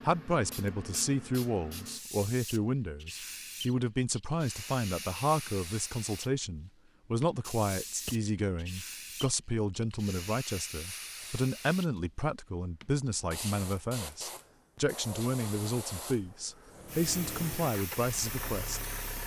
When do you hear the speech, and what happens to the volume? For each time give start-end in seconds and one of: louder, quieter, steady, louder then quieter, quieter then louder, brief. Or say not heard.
0.0-18.9 steady.